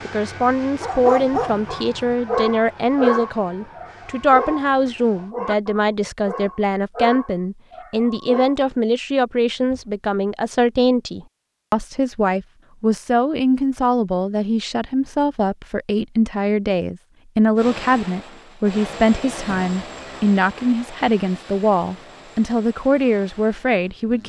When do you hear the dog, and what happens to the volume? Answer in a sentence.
The dog can be heard from 0.8 to 8.6 s, getting quieter.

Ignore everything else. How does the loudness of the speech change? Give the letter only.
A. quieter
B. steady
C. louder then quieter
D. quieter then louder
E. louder
B.